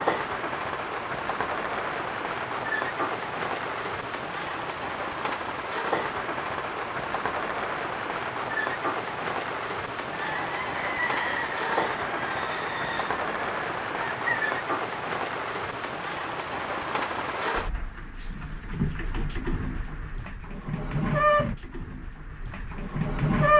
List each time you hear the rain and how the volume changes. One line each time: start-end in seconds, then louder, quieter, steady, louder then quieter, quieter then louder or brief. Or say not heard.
0.0-23.5 steady.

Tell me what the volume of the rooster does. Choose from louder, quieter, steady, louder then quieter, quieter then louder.
quieter.